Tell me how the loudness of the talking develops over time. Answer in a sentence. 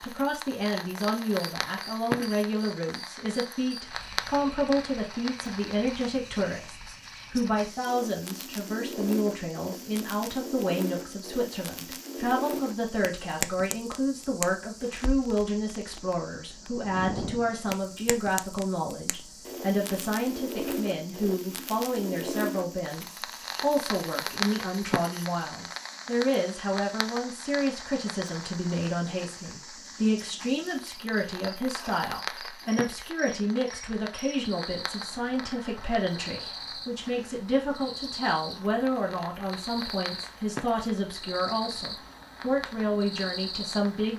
The volume of the talking stays about the same.